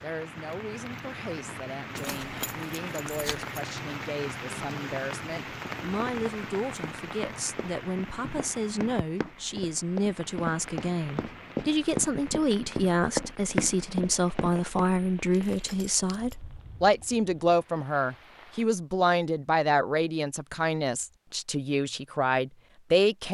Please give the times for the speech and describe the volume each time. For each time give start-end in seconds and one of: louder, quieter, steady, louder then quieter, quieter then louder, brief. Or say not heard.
0.0-23.2 louder.